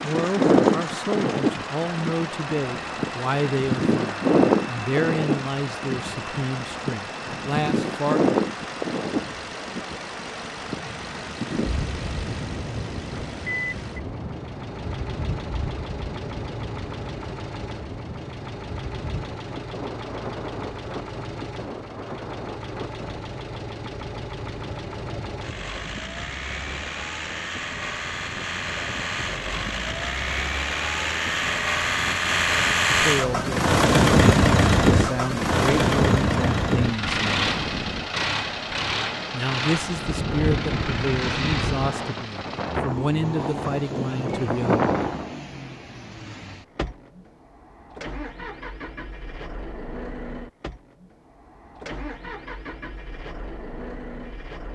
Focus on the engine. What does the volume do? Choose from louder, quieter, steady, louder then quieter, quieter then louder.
louder then quieter.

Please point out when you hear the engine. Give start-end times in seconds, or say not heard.
0.0-54.6.